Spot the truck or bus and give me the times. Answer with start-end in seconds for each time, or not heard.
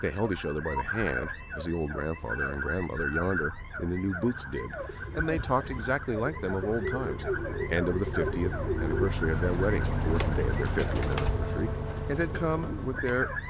0.2-13.4.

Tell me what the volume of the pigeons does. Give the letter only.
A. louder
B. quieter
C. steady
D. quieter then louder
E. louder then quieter
E.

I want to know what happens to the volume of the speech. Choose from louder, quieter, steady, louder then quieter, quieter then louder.
steady.